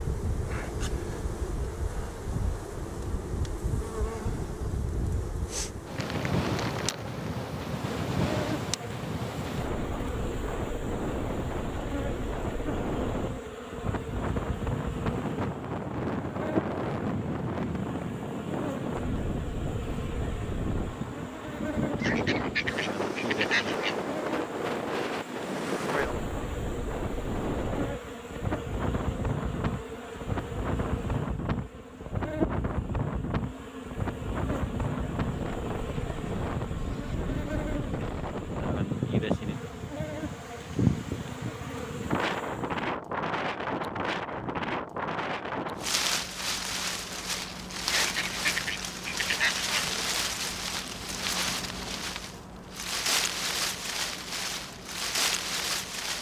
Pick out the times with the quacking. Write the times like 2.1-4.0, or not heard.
22.0-23.9, 48.0-49.9.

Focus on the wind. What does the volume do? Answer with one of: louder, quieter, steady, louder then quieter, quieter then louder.
steady.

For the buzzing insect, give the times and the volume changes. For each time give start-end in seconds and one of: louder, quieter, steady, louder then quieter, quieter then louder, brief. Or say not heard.
0.0-42.9 steady.